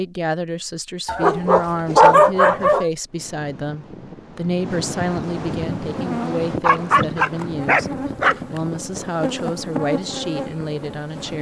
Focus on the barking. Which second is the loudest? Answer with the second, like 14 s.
2 s.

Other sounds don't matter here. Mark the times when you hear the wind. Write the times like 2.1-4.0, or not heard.
3.0-11.3.